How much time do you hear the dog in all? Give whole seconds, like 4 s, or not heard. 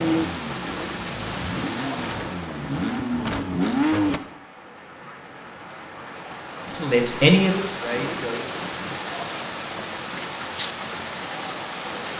not heard.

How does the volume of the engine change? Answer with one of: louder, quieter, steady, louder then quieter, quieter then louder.
louder.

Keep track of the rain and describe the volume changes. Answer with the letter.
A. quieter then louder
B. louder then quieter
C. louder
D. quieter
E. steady
A.